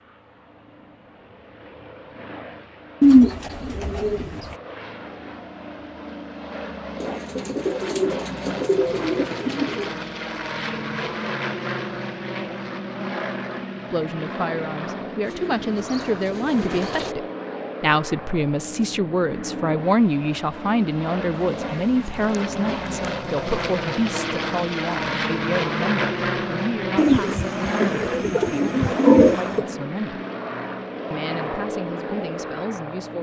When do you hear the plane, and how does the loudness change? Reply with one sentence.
You can hear the plane from 0.1 to 33.1 s, getting louder.